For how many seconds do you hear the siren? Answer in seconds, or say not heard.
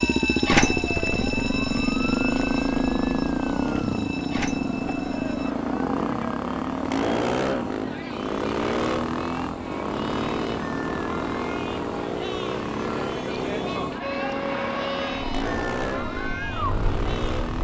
9 s.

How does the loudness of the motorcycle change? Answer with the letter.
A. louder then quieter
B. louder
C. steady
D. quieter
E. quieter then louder
D.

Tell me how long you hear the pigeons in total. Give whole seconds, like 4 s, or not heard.
not heard.